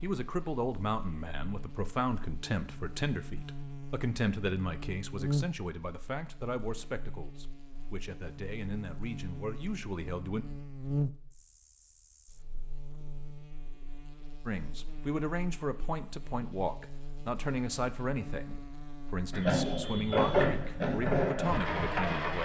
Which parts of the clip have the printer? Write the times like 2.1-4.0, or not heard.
19.3-22.4.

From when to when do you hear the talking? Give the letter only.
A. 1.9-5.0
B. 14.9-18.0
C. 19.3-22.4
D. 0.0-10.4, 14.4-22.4
D.